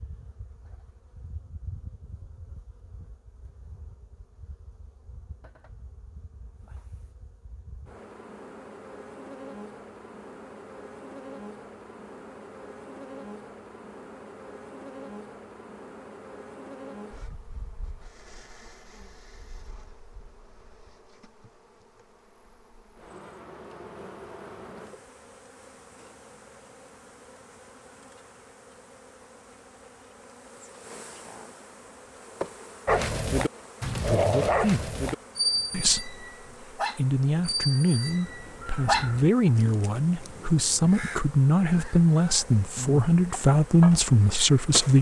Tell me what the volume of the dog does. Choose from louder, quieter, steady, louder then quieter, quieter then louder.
quieter.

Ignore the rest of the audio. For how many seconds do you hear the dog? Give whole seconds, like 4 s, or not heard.
6 s.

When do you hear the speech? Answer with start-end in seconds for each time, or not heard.
34.0-34.9, 35.7-44.9.